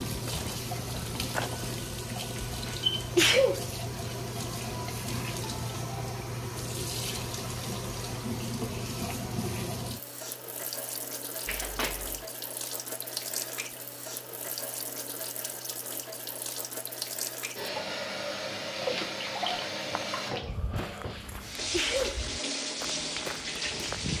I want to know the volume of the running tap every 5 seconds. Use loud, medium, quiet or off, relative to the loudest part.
loud, loud, medium, loud, loud.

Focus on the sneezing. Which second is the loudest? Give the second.
3 s.